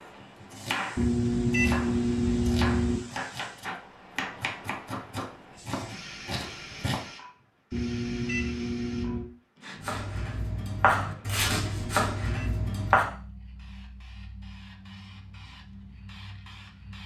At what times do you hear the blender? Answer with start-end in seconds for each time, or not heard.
not heard.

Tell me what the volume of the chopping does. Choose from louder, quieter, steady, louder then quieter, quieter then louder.
louder.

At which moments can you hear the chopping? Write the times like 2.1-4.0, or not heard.
0.0-7.1, 9.8-13.1.